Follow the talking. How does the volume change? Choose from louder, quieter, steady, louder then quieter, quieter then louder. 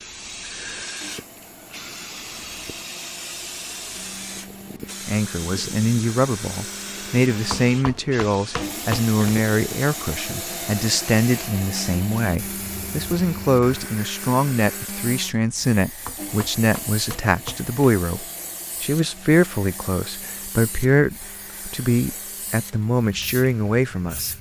steady.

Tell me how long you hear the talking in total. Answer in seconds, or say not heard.
19 s.